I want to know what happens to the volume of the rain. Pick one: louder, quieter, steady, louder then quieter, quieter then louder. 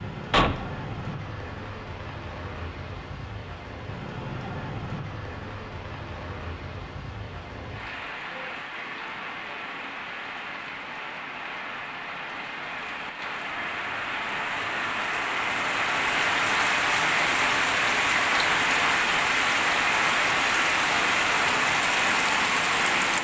louder.